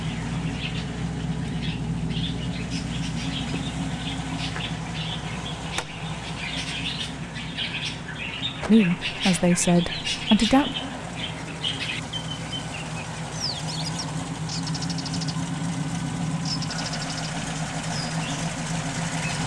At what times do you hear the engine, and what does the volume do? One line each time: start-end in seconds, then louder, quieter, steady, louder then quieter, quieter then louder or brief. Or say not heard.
0.0-19.4 quieter then louder.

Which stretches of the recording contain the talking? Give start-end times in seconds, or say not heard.
8.7-10.8.